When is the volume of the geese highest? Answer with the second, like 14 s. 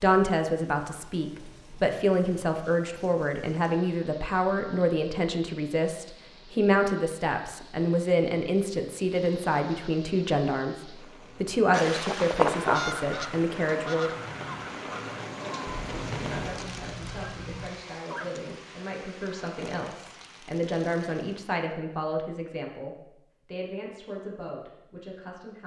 13 s.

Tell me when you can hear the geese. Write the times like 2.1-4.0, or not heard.
11.7-18.4.